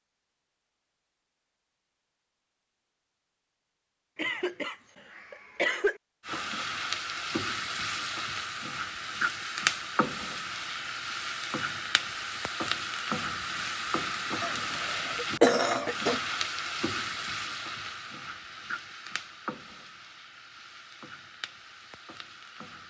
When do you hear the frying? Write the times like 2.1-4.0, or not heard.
6.2-22.8.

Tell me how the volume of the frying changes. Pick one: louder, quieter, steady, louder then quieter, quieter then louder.
quieter.